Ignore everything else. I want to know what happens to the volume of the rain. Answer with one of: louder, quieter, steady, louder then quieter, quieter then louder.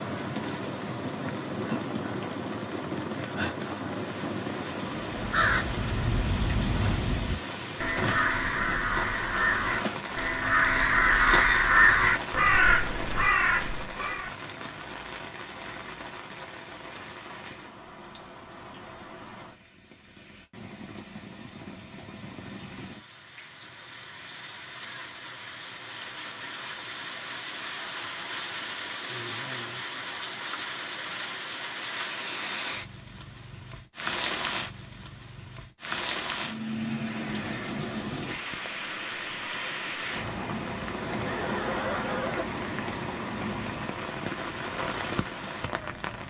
quieter then louder.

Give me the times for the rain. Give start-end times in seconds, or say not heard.
0.0-46.2.